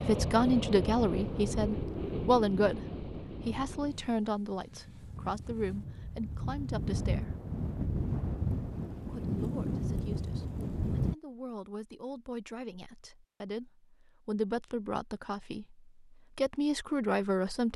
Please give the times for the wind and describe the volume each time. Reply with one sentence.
The wind can be heard from 0.0 to 11.2 s, getting quieter then louder.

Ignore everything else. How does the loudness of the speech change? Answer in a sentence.
The volume of the speech goes down, then up.